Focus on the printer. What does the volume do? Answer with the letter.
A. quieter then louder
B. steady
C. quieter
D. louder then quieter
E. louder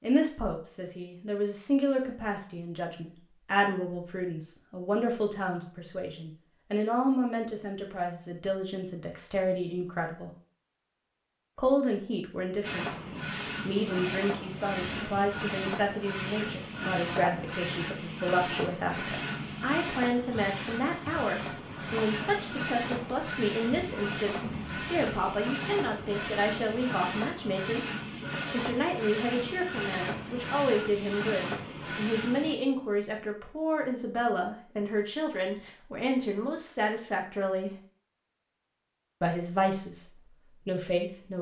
B.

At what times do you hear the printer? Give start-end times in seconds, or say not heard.
12.6-32.5.